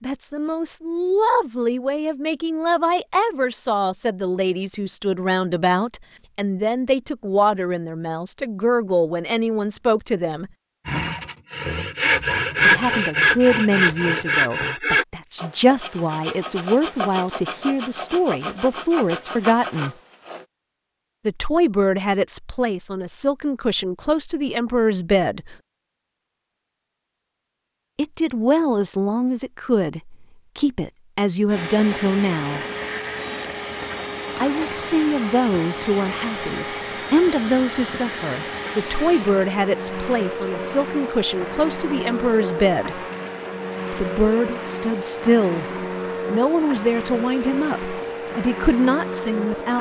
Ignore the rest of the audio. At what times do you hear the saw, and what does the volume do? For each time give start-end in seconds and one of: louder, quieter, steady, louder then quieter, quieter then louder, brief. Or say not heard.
10.8-20.4 quieter.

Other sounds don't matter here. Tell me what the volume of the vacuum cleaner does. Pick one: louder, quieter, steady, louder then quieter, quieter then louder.
steady.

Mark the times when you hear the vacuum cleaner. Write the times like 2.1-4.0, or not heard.
31.4-49.7.